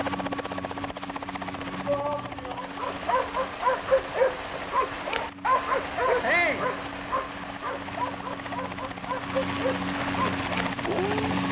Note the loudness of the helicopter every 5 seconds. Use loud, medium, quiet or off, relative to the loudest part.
medium, medium, loud.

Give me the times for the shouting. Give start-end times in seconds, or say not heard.
1.9-2.6, 6.2-6.7.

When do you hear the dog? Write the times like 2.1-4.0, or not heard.
2.5-11.2.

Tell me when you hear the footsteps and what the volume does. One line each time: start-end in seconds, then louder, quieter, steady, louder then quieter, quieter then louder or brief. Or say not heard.
not heard.